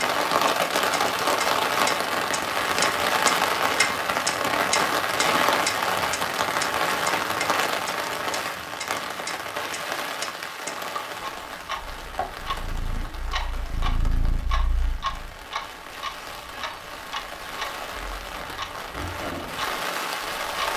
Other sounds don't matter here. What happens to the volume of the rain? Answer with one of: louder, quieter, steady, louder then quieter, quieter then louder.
quieter then louder.